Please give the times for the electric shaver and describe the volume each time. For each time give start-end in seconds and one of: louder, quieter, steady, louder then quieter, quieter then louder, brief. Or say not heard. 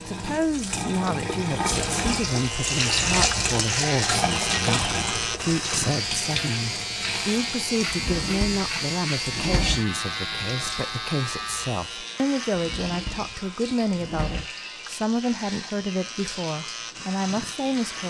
1.9-18.0 quieter.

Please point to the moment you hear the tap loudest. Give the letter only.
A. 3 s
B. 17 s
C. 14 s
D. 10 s
A.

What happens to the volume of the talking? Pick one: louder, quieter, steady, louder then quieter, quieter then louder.
steady.